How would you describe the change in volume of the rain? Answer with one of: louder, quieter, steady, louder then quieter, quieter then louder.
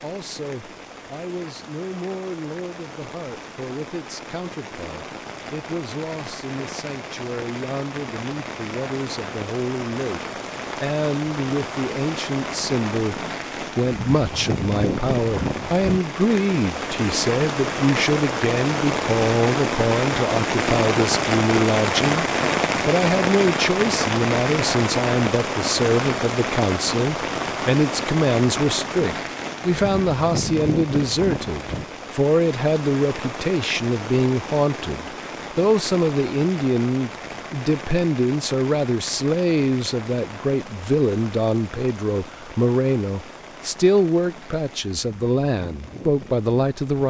louder then quieter.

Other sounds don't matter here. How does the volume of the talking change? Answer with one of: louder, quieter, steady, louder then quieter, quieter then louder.
louder.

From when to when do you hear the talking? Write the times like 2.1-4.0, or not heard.
0.0-47.0.